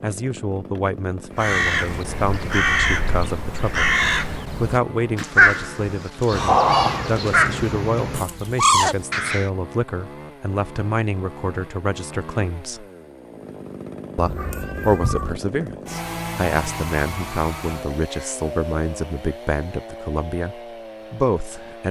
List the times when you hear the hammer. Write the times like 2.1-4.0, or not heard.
not heard.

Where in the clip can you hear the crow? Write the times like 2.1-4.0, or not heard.
1.4-9.5.